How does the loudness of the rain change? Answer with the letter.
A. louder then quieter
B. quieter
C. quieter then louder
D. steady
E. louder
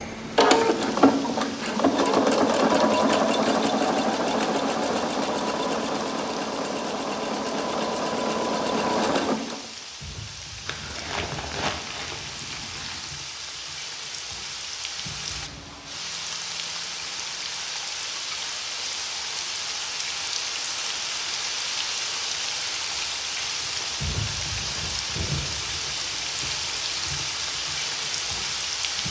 E.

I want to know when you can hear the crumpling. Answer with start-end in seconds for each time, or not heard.
10.7-13.1.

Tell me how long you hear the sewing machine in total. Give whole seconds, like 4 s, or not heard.
10 s.